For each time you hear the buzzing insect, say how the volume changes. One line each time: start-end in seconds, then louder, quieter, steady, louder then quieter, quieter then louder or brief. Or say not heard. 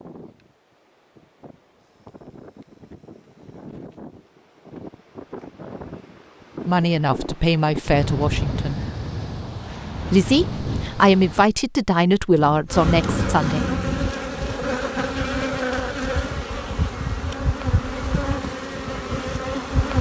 12.7-19.9 steady.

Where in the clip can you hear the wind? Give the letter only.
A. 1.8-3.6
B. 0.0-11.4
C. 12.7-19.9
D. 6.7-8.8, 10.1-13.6
B.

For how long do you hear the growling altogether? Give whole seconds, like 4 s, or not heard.
2 s.